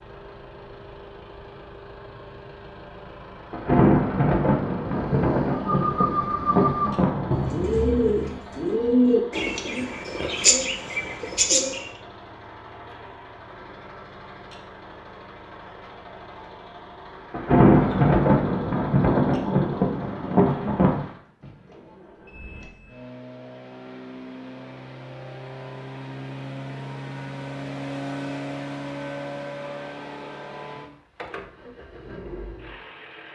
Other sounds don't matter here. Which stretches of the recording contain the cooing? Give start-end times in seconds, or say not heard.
4.9-11.9.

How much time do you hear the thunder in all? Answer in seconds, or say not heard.
8 s.